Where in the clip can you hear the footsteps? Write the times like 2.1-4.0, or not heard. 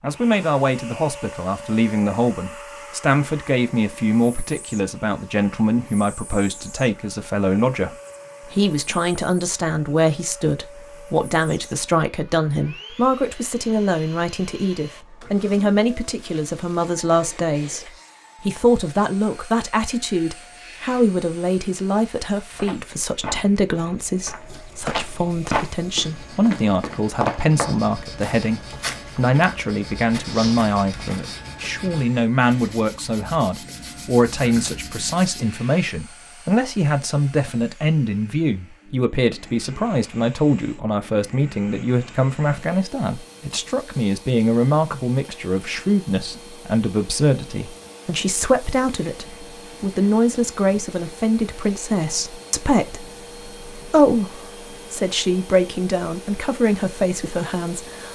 22.5-31.7.